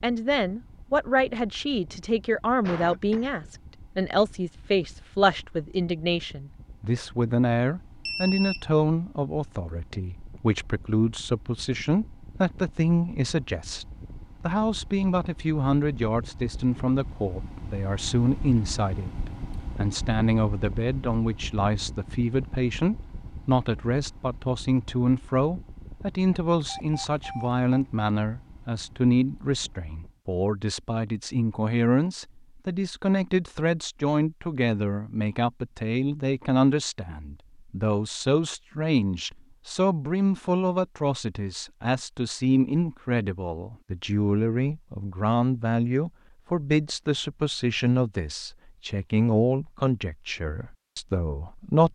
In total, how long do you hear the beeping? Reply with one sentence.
You can hear the beeping for 2 seconds altogether.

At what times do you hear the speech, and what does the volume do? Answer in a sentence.
You can hear the speech from 0.0 to 19.1 s, at a steady volume; and from 19.8 to 51.9 s, at a steady volume.